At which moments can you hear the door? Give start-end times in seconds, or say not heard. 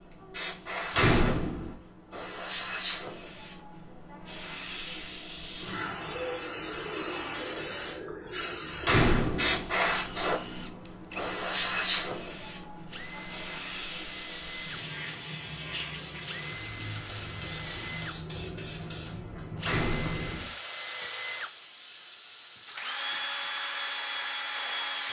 0.9-1.8, 8.8-9.7, 19.6-20.4.